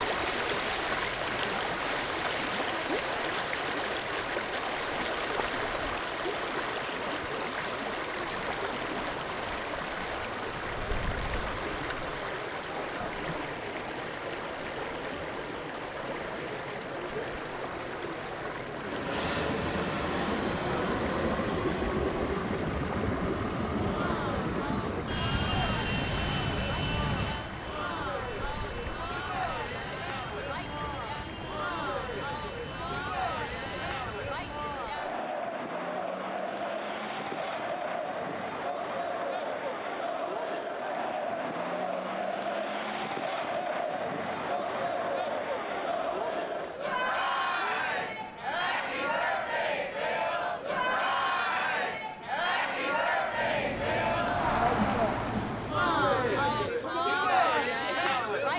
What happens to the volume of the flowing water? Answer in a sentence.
The loudness of the flowing water goes down.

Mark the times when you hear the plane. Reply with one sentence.
The plane can be heard from 18.8 to 35.1 s and from 53.2 to 58.5 s.